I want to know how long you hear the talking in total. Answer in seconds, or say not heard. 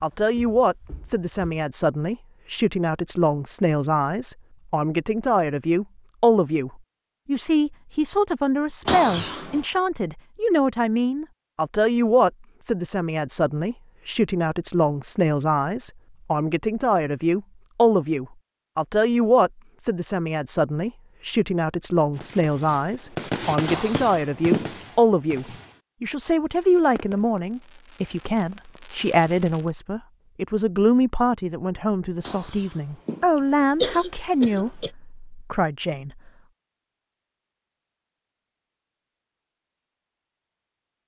36 s.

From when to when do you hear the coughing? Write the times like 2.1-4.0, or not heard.
8.8-9.7, 23.6-24.8, 32.2-34.9.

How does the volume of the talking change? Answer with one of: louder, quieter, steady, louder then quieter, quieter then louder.
steady.